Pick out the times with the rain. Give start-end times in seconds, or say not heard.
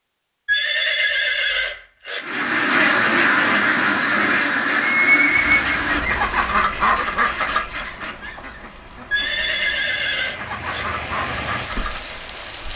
5.3-12.7.